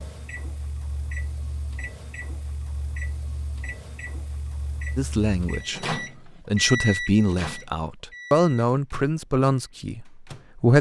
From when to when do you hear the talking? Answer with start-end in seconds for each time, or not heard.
5.0-10.7.